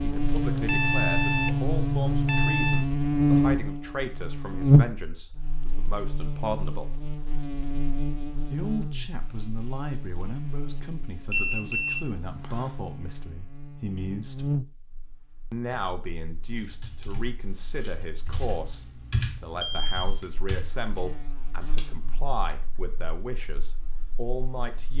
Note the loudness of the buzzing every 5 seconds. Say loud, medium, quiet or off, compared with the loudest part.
loud, quiet, quiet, quiet, quiet.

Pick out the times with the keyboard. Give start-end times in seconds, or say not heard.
15.7-22.1.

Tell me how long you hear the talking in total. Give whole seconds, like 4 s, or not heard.
22 s.